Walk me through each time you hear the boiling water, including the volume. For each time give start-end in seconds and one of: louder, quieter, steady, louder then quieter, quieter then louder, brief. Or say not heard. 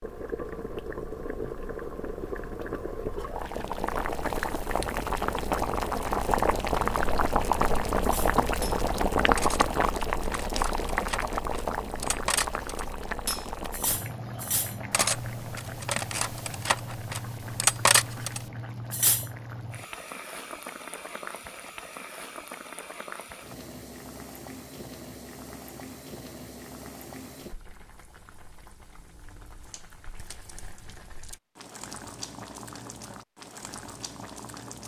0.0-34.8 quieter.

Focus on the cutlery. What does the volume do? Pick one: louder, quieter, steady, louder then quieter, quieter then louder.
louder.